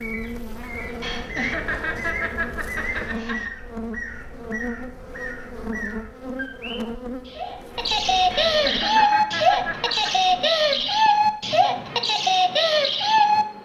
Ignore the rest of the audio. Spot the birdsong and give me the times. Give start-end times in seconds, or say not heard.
0.0-13.4.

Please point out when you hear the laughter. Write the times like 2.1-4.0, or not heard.
1.0-3.5, 8.3-10.2.